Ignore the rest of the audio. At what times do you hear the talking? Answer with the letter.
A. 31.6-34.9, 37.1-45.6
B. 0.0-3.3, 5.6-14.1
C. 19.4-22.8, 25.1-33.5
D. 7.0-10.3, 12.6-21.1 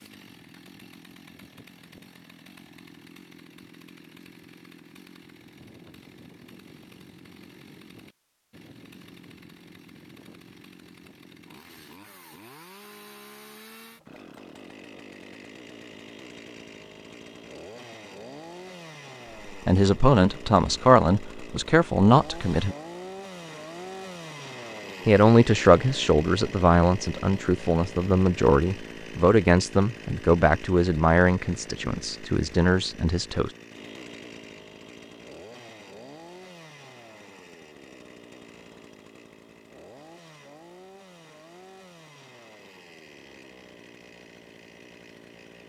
C.